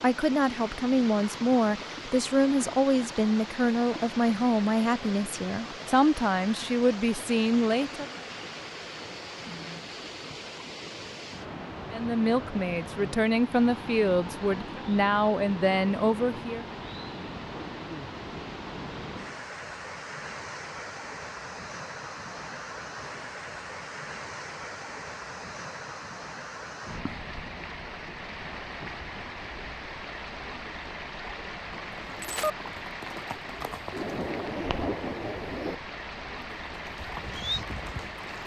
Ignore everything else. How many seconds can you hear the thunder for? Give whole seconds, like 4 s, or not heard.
2 s.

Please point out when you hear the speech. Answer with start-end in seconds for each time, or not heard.
0.0-8.1, 11.9-16.6.